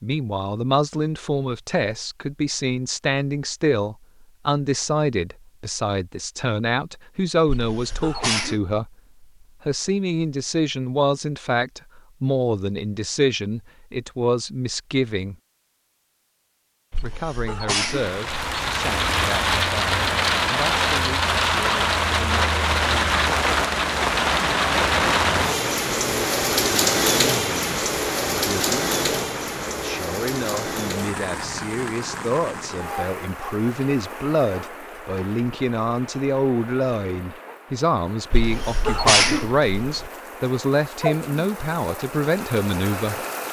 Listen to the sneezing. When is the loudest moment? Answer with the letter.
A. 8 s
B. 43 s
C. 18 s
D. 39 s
D.